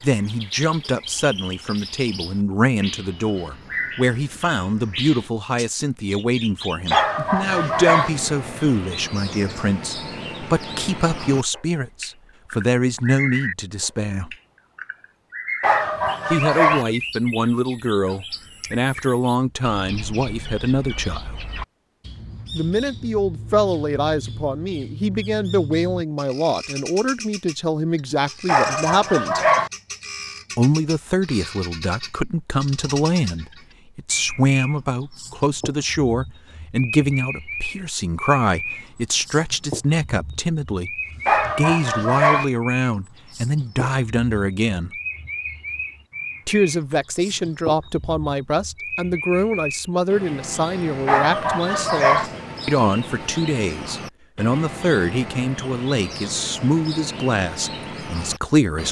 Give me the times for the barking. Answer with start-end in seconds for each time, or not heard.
6.9-8.1, 15.6-16.9, 28.4-29.7, 41.2-42.5, 51.0-52.3.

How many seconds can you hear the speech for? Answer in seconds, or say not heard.
53 s.